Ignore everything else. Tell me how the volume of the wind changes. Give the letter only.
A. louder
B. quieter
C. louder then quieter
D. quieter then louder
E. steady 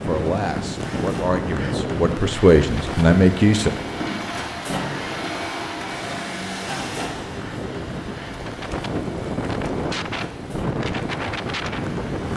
D.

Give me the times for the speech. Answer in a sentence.
The speech can be heard from 0.1 to 3.7 s.